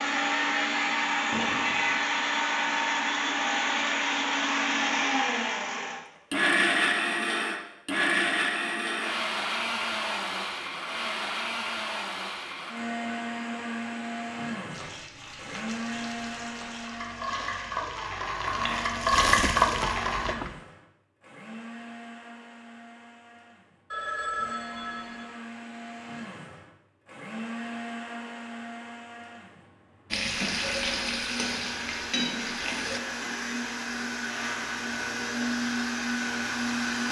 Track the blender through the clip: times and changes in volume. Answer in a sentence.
You can hear the blender from 0.0 to 37.0 s, getting quieter then louder.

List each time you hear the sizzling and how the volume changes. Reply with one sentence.
The sizzling can be heard from 14.7 to 20.4 s, getting louder; and briefly from 30.1 to 33.0 s.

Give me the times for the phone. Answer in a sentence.
The phone can be heard from 1.3 to 1.9 s and from 23.9 to 25.2 s.